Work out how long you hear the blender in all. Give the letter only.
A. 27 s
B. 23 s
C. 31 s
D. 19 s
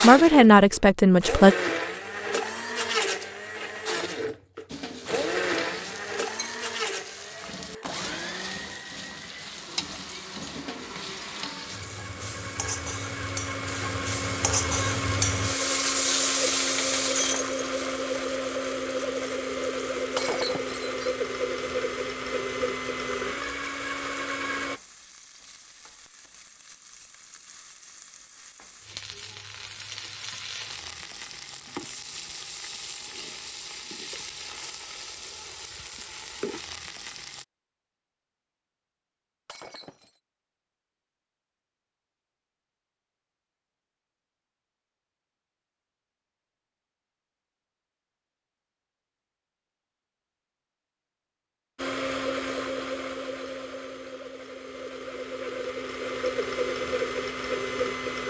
C.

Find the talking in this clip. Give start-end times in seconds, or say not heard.
0.0-1.6.